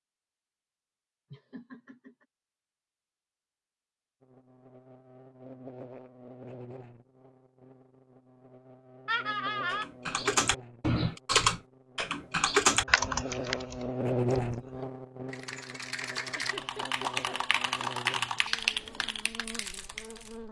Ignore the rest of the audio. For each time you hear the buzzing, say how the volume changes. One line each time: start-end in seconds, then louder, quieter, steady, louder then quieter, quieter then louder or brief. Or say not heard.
4.2-20.4 louder then quieter.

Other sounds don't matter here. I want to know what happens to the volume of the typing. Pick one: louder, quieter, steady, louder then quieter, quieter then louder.
quieter then louder.